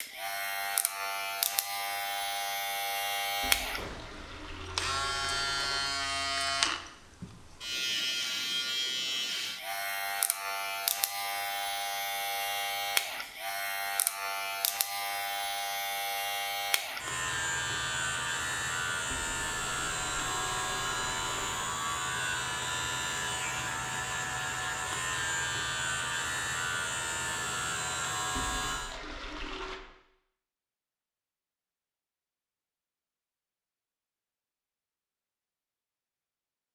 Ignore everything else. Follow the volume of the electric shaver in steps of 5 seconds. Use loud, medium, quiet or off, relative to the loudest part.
loud, loud, loud, loud, loud, loud, off, off.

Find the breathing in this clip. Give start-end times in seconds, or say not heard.
not heard.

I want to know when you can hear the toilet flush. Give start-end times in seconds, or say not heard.
3.4-6.0, 19.1-21.6, 28.4-29.8.